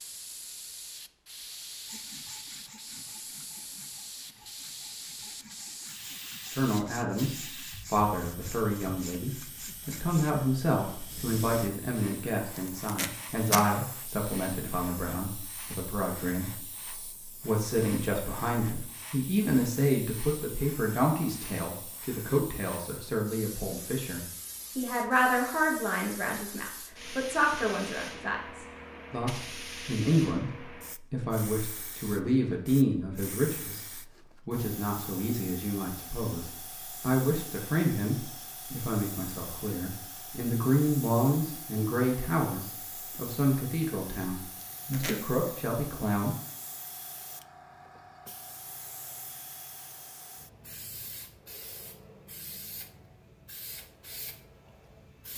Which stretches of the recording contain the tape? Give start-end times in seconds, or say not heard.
12.6-13.7, 44.5-45.3.